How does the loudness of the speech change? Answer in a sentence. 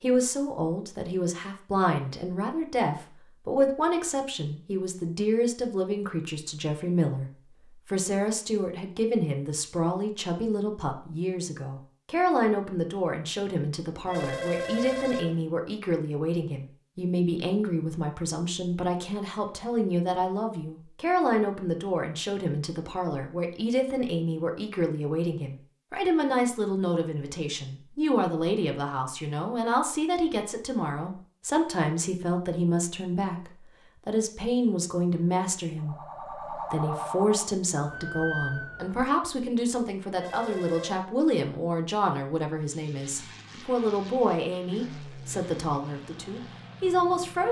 The volume of the speech stays about the same.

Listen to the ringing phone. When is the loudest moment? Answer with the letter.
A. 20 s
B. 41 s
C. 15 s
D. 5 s
C.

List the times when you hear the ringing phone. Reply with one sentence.
The ringing phone can be heard from 14.1 to 15.4 s and from 40.1 to 41.0 s.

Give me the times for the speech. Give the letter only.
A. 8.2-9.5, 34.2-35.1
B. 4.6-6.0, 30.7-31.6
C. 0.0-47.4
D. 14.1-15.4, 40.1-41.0
C.